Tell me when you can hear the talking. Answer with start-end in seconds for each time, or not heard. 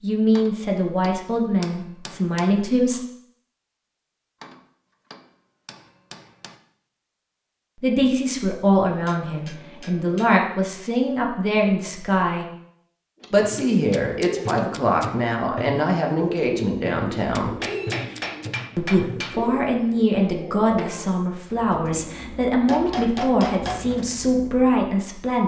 0.0-3.0, 7.8-12.4, 13.3-17.6, 18.8-25.4.